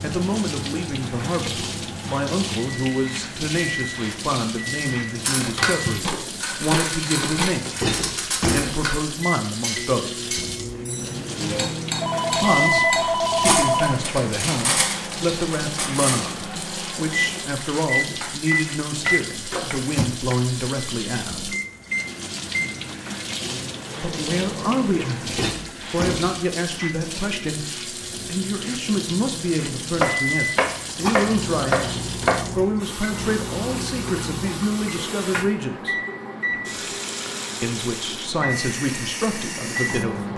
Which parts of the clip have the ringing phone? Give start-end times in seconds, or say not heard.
11.4-14.0.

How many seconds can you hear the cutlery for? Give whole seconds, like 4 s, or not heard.
11 s.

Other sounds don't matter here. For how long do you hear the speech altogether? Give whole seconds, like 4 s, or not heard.
34 s.